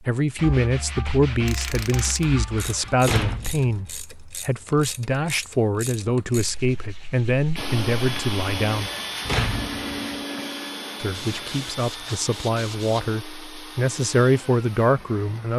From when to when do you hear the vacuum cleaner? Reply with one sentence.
You can hear the vacuum cleaner from 7.5 to 15.5 s.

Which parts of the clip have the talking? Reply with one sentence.
The talking can be heard from 0.1 to 8.9 s and from 11.0 to 15.5 s.